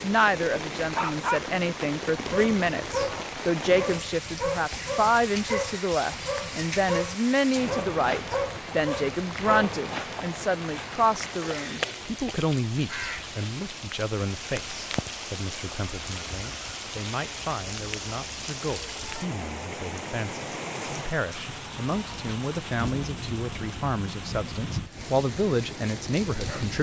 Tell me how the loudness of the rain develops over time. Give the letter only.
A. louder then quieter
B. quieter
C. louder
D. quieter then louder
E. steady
E.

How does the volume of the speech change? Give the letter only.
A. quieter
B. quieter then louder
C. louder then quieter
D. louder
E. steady
B.